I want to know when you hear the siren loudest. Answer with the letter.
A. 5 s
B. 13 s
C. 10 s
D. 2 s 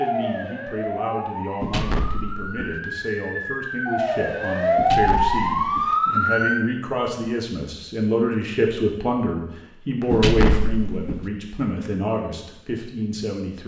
A.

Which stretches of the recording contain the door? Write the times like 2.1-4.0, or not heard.
1.6-2.8, 4.8-6.0, 10.1-11.2.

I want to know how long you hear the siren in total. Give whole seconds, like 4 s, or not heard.
7 s.